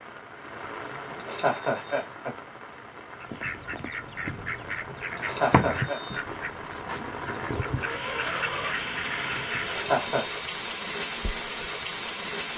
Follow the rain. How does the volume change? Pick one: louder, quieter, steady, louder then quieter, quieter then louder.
louder.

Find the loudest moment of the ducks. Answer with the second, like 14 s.
6 s.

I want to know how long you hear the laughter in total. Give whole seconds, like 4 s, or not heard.
3 s.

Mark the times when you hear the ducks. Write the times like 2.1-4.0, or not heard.
3.2-9.9.